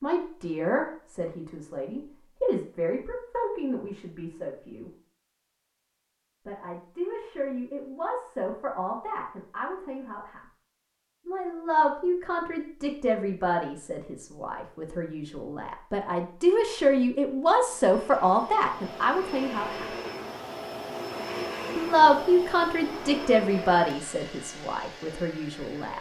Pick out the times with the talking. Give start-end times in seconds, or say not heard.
0.0-4.9, 6.5-10.4, 11.2-19.9, 21.8-25.9.